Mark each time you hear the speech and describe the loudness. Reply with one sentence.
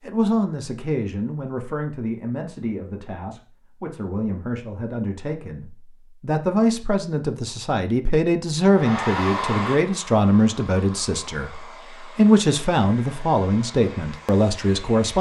The speech can be heard from 0.1 to 15.1 s, getting louder.